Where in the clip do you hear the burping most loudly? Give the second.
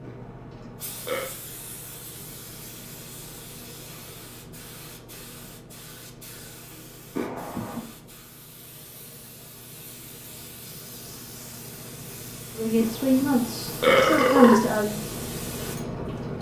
14 s.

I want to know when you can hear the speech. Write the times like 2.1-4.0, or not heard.
12.6-15.0.